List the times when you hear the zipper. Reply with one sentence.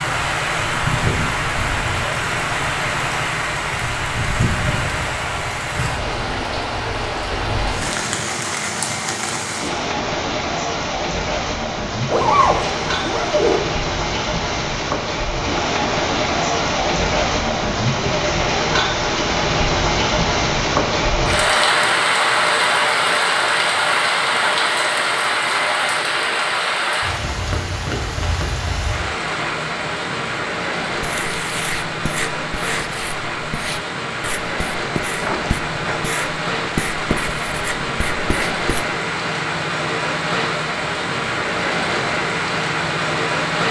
The zipper can be heard from 12.1 to 13.6 s and from 35.2 to 36.1 s.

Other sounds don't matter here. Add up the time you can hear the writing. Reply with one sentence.
You can hear the writing for 8 seconds altogether.